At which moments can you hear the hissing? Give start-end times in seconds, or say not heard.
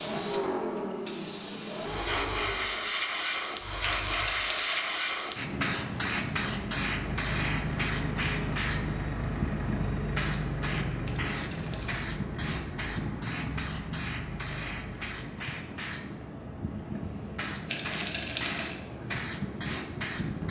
0.0-20.4.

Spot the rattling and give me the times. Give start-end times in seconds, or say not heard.
3.8-4.9, 11.1-12.0, 17.6-18.8.